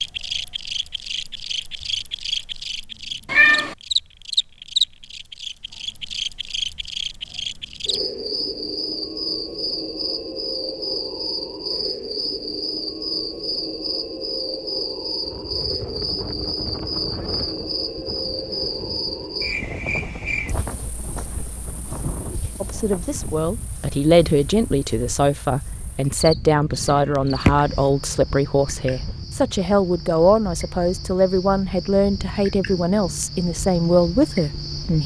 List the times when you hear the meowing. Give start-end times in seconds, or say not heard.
3.2-3.8, 26.7-27.8.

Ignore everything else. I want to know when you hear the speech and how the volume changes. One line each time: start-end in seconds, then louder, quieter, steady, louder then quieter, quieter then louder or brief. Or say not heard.
22.6-35.0 steady.